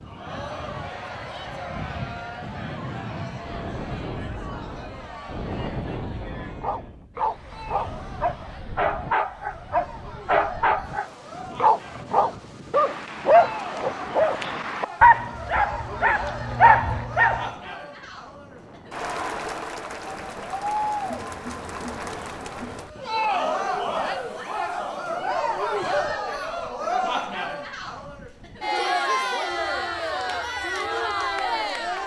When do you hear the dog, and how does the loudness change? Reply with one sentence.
The dog can be heard from 6.4 to 17.5 s, getting louder.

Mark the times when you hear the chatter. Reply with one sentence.
You can hear the chatter from 0.1 to 32.0 s.